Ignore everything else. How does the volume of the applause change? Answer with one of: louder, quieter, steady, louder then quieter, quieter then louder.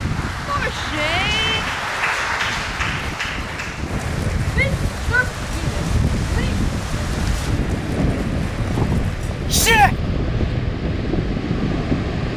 quieter.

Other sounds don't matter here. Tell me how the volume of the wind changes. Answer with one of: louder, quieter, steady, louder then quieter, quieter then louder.
louder.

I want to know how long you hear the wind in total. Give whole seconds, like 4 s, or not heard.
12 s.